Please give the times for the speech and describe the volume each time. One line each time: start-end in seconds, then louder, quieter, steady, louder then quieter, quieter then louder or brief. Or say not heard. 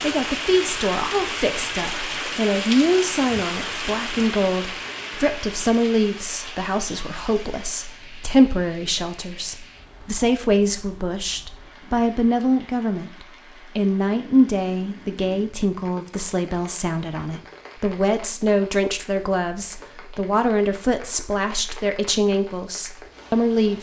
0.0-23.7 steady.